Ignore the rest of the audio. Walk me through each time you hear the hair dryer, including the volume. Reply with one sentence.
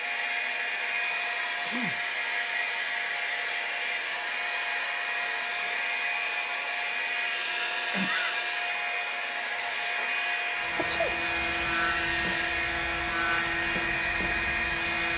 The hair dryer can be heard from 0.0 to 15.1 s, at a steady volume.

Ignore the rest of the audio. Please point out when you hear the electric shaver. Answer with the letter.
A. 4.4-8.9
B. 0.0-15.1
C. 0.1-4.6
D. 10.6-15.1
D.